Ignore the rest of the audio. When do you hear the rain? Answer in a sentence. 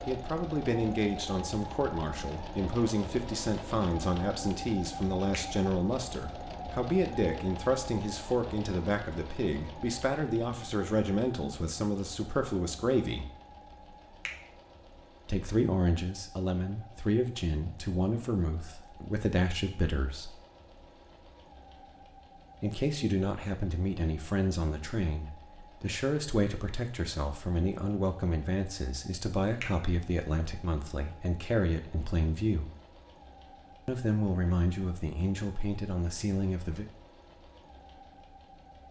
The rain can't be heard in this clip.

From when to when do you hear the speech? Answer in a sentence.
You can hear the speech from 0.1 to 13.3 s, from 15.2 to 20.4 s, from 22.6 to 32.7 s and from 33.9 to 36.9 s.